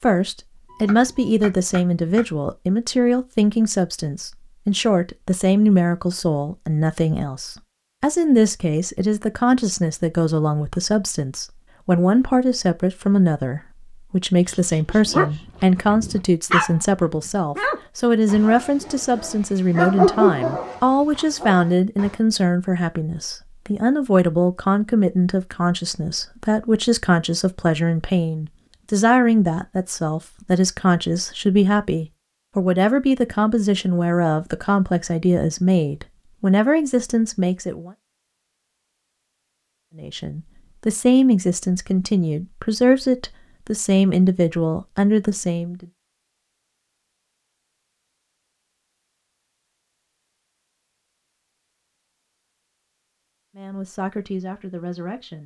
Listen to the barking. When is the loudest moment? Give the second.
20 s.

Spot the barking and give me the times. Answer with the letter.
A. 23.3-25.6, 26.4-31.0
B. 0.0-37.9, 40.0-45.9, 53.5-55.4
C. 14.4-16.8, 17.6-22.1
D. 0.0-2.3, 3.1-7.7
C.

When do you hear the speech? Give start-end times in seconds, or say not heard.
0.0-37.9, 40.0-45.9, 53.5-55.4.